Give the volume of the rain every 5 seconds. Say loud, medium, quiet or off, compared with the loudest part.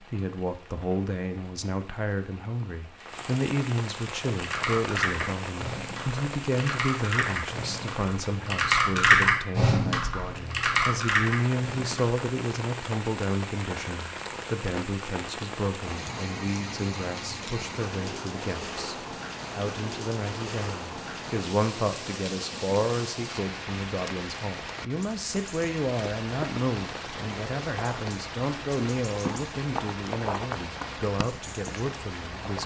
medium, loud, loud, loud, loud, loud, loud.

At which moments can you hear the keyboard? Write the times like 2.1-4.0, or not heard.
4.2-12.2.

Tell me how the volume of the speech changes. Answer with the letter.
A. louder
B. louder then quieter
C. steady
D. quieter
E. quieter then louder
C.